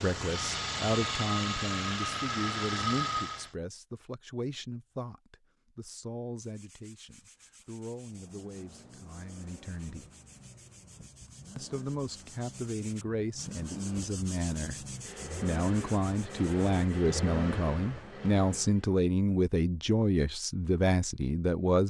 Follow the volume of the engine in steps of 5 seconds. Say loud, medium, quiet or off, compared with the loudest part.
loud, quiet, quiet, medium, off.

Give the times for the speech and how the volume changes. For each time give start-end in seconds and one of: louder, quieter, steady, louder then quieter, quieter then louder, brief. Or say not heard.
0.0-10.1 quieter
11.6-21.8 louder.